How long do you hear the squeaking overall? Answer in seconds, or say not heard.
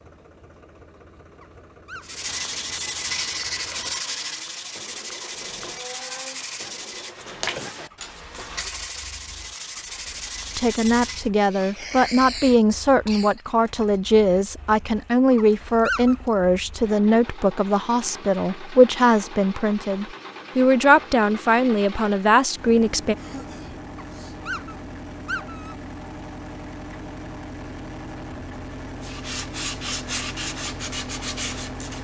3 s.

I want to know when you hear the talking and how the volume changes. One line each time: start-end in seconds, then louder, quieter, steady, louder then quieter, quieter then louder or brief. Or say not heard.
10.6-23.1 steady.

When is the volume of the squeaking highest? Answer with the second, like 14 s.
16 s.